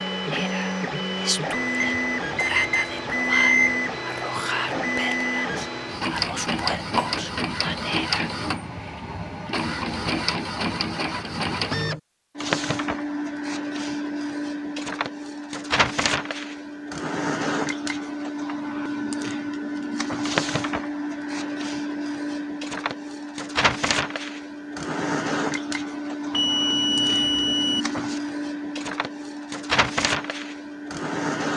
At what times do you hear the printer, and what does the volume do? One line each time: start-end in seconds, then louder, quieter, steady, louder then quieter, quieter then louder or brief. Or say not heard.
0.0-31.5 steady.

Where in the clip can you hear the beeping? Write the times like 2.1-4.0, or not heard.
1.8-3.8, 26.3-27.9.